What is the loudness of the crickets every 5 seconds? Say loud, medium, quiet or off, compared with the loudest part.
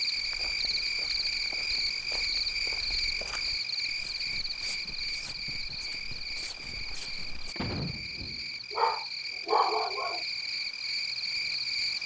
loud, medium, loud.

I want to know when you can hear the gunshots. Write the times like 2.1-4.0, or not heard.
7.5-8.6.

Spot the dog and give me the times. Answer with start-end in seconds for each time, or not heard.
8.7-10.2.